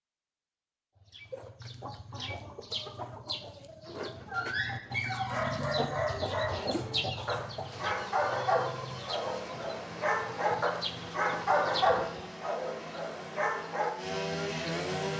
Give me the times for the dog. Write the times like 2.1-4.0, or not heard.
4.2-13.9.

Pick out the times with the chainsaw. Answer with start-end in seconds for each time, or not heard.
7.7-15.1.